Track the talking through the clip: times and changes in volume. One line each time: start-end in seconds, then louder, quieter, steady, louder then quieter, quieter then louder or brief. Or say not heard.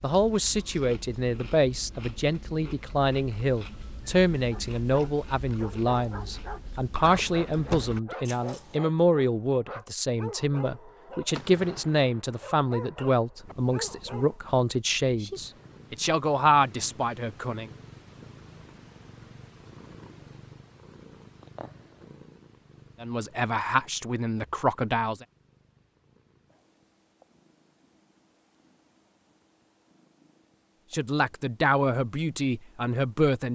0.0-17.7 steady
23.0-25.2 brief
30.9-33.5 brief.